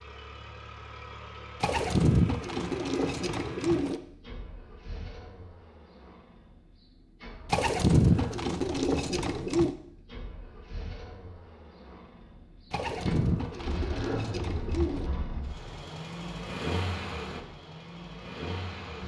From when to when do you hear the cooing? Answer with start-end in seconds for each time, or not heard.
1.6-4.0, 7.5-9.8, 12.7-15.1.